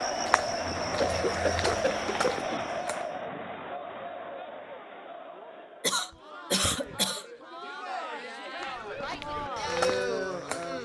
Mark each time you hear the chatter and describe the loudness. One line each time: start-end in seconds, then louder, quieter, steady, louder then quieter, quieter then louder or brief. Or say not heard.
0.0-10.8 quieter then louder.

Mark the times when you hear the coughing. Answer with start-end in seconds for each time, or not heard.
1.0-2.6, 5.8-7.2.